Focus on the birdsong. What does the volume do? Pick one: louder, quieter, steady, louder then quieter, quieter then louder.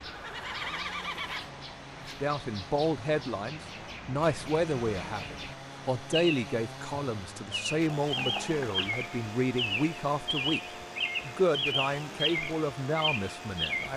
louder.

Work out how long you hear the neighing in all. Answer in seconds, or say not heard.
2 s.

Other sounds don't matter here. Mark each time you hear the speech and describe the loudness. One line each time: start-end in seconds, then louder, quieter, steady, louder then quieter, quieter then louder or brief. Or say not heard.
1.9-10.6 steady
11.2-13.9 brief.